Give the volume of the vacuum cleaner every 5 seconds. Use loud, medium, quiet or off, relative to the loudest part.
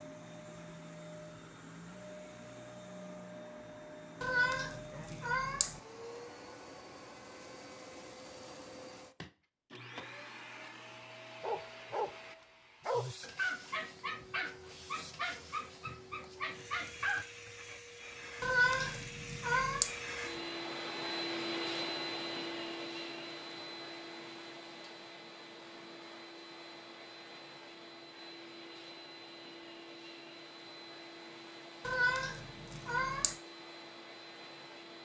medium, medium, medium, medium, loud, medium, medium.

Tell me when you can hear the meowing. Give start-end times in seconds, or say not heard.
4.2-5.8, 18.4-19.9, 31.9-33.4.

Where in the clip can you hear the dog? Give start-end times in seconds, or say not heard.
11.4-12.2, 12.8-17.5.